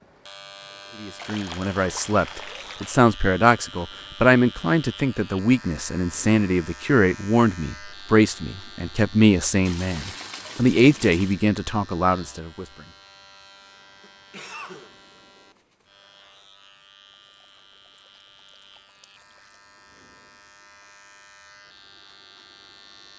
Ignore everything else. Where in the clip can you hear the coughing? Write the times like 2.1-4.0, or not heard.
13.6-15.1.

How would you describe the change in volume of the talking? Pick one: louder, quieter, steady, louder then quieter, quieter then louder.
steady.